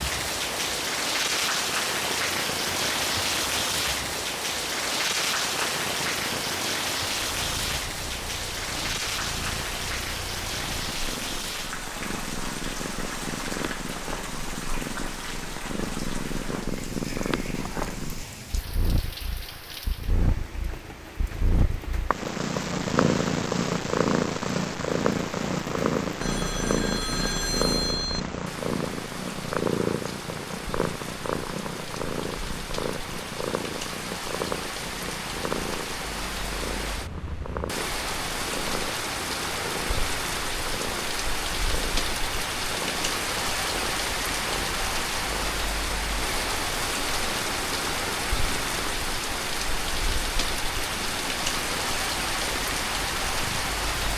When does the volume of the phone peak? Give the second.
28 s.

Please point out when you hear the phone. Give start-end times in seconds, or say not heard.
26.2-28.2.